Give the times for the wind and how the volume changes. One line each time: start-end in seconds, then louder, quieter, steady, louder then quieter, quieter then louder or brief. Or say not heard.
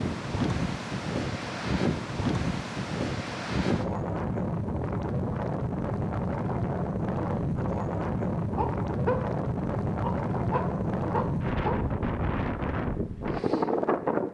0.0-14.2 steady.